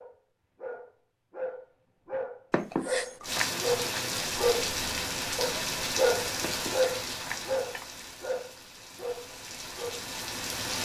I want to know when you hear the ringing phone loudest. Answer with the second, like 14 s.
3 s.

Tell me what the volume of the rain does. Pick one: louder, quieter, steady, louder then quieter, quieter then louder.
quieter then louder.